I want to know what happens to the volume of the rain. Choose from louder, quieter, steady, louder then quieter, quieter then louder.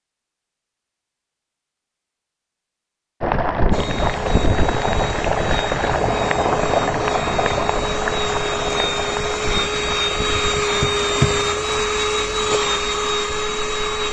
quieter.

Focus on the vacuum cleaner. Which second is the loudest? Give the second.
11 s.